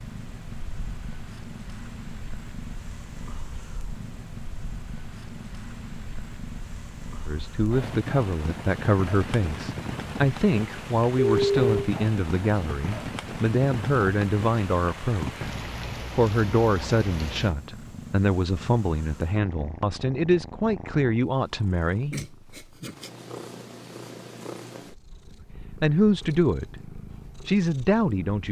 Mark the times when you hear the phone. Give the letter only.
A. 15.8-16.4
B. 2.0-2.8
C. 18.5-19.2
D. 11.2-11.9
D.